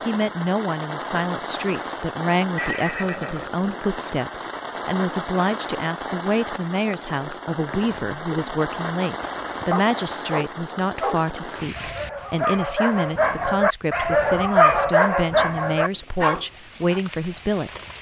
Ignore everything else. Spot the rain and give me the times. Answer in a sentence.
You can hear the rain from 0.0 to 17.9 s.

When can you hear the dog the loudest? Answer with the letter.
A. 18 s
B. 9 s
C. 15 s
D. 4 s
C.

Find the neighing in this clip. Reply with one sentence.
The neighing can be heard from 2.5 to 3.7 s.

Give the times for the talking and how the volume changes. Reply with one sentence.
You can hear the talking from 0.0 to 17.8 s, at a steady volume.